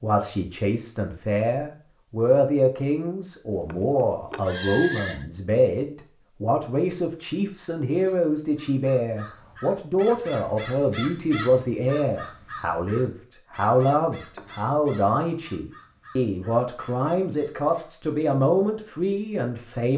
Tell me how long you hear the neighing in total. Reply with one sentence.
The neighing can be heard for 2 seconds in total.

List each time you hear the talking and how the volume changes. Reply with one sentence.
The talking can be heard from 0.0 to 19.9 s, at a steady volume.